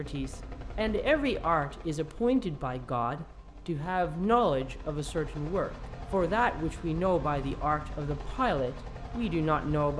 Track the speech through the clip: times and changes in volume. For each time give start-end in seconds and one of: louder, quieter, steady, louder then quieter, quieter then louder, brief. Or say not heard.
0.0-9.9 steady.